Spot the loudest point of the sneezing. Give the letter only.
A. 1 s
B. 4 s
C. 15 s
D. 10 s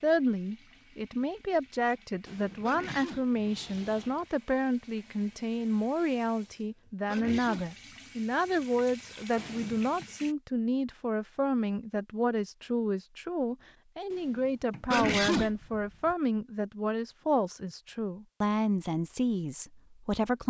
C.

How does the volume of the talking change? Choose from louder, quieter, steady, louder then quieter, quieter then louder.
steady.